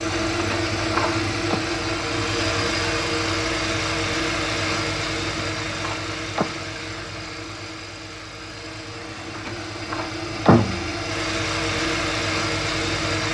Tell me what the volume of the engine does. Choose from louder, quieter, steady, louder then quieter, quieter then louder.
quieter then louder.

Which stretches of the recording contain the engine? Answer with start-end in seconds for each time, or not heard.
0.0-13.2.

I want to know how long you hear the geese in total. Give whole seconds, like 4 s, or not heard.
not heard.